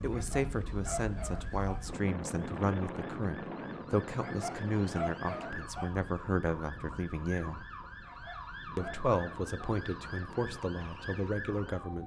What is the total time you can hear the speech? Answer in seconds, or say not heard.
11 s.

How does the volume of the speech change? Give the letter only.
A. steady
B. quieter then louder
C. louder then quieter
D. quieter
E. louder
A.